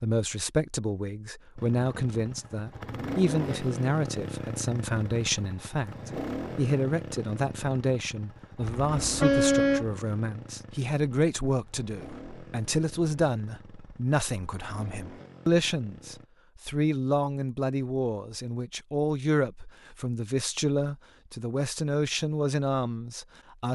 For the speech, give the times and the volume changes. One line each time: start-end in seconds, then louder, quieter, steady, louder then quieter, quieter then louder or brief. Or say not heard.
0.0-23.6 steady.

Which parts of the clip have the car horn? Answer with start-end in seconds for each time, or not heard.
8.6-9.9.